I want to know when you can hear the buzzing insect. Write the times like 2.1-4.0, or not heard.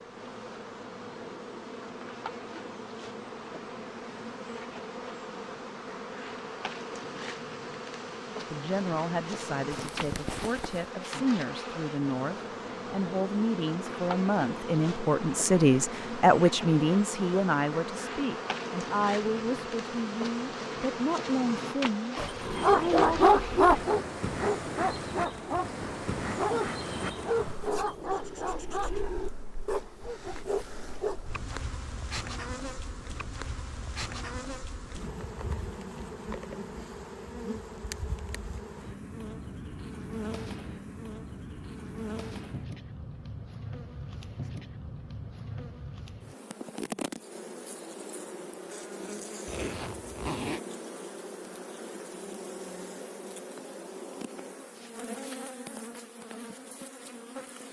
0.0-57.6.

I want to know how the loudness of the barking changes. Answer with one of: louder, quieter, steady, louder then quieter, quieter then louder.
quieter.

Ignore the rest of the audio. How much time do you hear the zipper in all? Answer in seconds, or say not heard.
2 s.